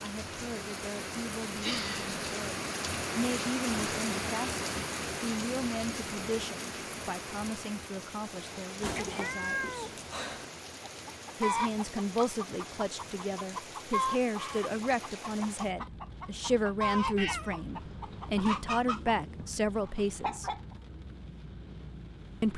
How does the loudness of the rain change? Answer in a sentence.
The volume of the rain goes down.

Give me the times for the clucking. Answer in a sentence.
The clucking can be heard from 10.8 to 20.8 s.